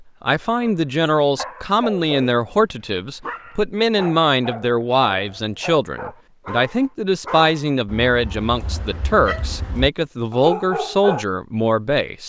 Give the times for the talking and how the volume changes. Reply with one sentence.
The talking can be heard from 0.2 to 12.2 s, at a steady volume.